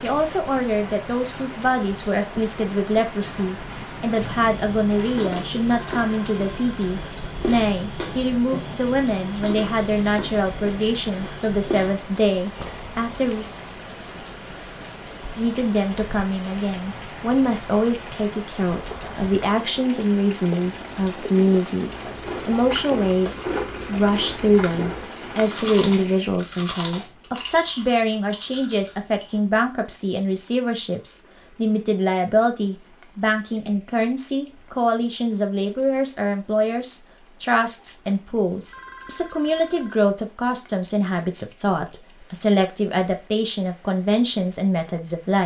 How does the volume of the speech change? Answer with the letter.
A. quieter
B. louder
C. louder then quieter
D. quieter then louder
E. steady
E.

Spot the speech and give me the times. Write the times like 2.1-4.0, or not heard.
0.0-13.4, 15.3-45.4.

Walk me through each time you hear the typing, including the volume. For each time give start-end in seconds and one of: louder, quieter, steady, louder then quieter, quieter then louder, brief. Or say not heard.
not heard.